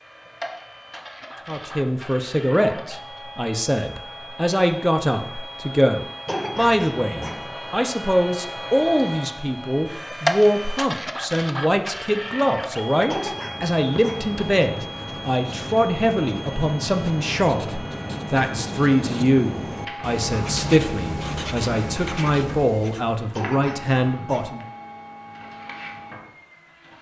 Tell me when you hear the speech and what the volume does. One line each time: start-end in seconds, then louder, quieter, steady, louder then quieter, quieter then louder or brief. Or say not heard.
1.4-24.6 steady.